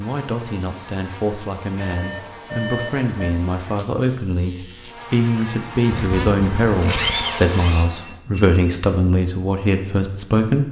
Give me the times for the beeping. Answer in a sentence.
You can hear the beeping from 1.8 to 3.4 s and from 7.8 to 8.6 s.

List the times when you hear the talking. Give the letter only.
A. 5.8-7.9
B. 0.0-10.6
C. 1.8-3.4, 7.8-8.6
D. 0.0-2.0
B.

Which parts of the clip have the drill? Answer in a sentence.
The drill can be heard from 5.8 to 7.9 s.